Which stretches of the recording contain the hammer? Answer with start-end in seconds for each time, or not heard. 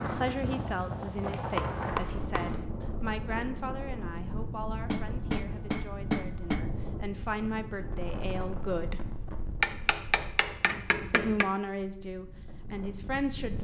1.4-2.6, 4.8-6.7, 9.6-11.5.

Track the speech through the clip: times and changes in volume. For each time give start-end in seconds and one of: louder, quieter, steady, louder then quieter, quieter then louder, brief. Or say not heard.
0.0-9.1 quieter then louder
11.1-13.5 brief.